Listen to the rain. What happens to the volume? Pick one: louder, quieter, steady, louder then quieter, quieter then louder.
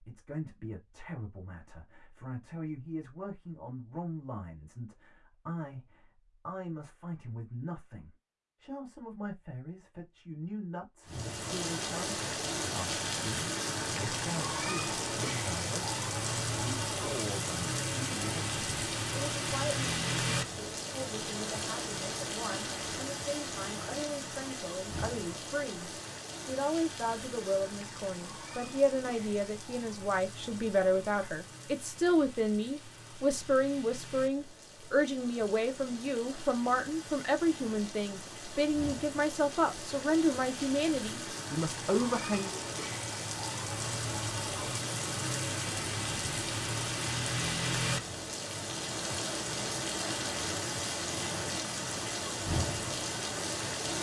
quieter then louder.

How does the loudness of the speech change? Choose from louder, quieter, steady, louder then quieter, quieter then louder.
louder.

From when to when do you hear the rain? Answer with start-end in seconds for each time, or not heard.
11.1-53.9.